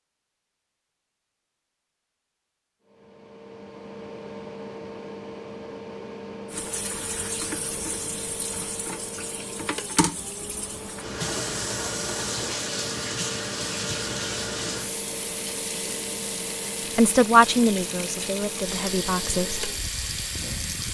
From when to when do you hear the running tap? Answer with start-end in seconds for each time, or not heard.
6.5-20.8.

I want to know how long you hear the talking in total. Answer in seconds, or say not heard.
3 s.